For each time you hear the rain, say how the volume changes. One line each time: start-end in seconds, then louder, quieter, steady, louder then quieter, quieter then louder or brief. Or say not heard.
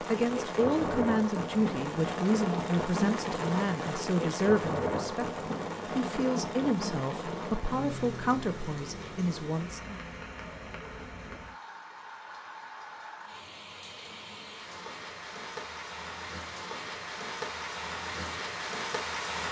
0.0-19.4 quieter then louder.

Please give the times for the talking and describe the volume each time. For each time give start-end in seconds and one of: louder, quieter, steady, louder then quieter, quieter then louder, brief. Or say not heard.
0.0-10.0 steady.